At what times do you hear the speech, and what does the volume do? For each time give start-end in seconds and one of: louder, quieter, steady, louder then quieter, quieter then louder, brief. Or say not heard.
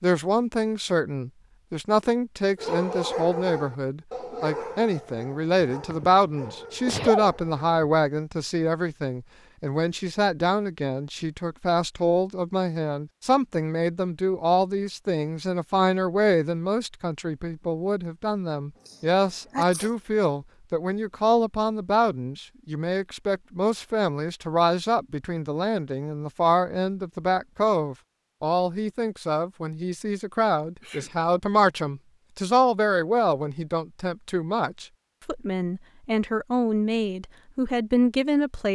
0.0-38.6 steady.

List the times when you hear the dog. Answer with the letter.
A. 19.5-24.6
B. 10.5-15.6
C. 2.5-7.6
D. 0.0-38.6
C.